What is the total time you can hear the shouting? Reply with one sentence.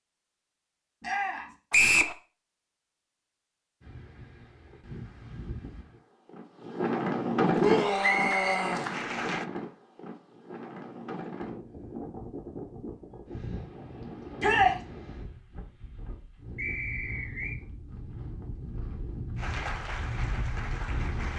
The shouting can be heard for 2 seconds in total.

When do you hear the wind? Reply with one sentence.
You can hear the wind from 3.8 to 21.3 s.